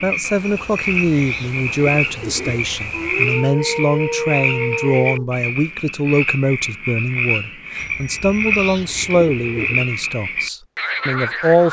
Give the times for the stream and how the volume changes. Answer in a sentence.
You can't hear the stream here.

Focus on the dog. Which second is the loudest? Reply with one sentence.
The volume of the dog peaks at 4 seconds.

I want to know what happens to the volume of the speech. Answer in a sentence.
The volume of the speech stays about the same.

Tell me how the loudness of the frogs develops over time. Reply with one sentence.
The volume of the frogs stays about the same.